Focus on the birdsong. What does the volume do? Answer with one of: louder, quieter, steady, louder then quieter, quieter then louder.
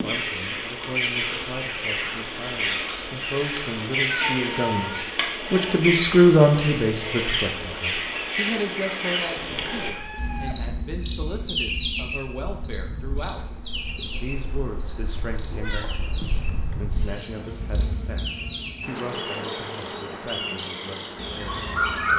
quieter then louder.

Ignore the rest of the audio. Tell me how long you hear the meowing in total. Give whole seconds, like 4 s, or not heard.
3 s.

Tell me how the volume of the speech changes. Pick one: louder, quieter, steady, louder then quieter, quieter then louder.
louder then quieter.